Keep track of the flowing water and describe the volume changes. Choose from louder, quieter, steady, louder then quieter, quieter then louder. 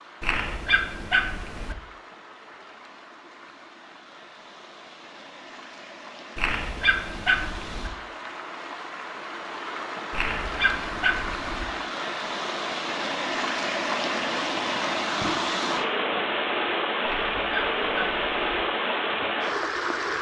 louder.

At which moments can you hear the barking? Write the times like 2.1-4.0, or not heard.
0.2-1.8, 6.3-7.9, 10.1-11.7, 17.0-18.6.